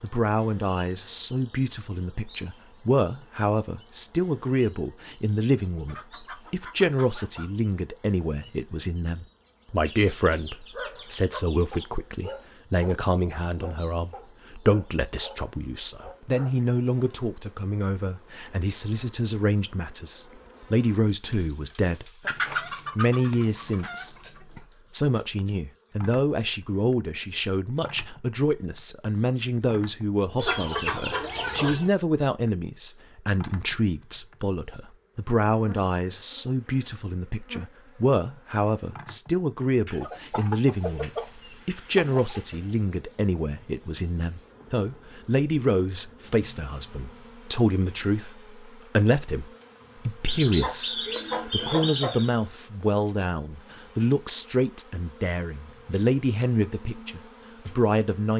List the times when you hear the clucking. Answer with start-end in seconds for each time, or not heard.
5.7-7.5, 9.8-11.8, 22.2-24.6, 30.4-31.9, 39.9-42.5, 50.2-52.3.